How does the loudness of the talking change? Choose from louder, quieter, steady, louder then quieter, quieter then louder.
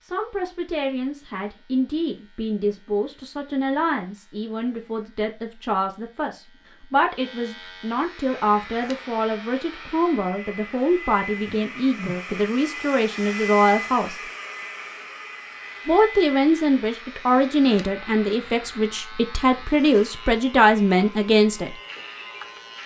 louder.